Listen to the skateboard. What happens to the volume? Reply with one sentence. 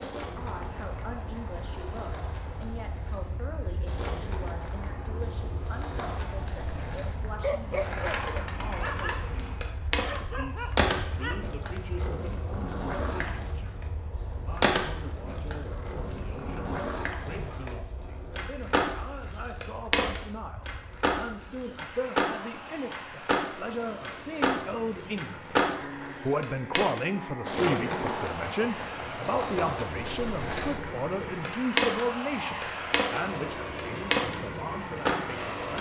The volume of the skateboard goes up.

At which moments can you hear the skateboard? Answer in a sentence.
The skateboard can be heard from 0.0 to 35.7 s.